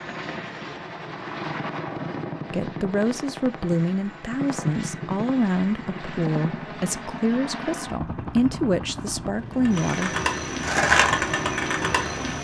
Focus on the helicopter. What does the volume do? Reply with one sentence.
The volume of the helicopter stays about the same.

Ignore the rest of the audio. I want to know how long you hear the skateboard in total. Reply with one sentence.
The skateboard can be heard for 3 seconds in total.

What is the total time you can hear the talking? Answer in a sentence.
The talking can be heard for 8 seconds in total.